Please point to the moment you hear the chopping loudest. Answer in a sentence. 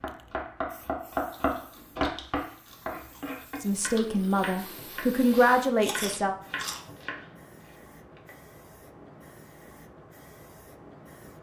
The loudest moment of the chopping is at 1 second.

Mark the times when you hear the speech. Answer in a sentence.
The speech can be heard from 3.6 to 6.3 s.